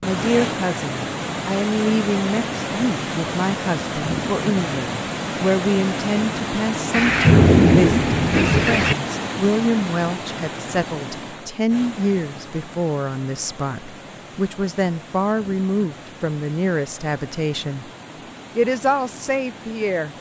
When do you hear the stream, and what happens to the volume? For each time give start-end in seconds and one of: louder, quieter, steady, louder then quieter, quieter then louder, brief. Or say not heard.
0.0-20.1 quieter.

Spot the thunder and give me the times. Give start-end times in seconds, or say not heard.
6.9-8.9.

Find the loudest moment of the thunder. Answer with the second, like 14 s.
7 s.